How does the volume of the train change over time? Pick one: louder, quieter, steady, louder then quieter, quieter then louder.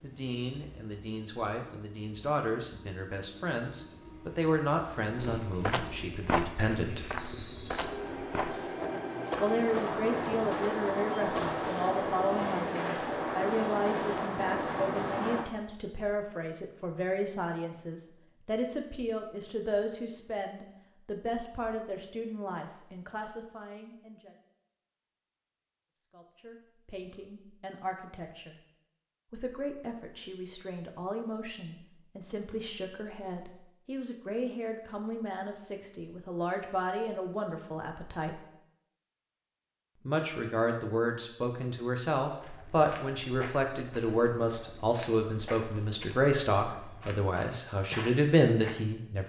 louder.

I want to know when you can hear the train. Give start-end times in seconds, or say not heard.
0.0-15.4.